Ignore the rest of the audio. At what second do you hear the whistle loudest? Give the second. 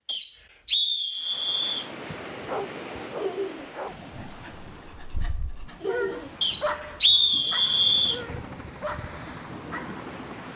7 s.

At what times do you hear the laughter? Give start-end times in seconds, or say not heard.
3.1-3.7, 5.8-6.3.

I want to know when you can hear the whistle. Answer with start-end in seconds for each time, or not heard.
0.1-1.9, 6.4-8.2.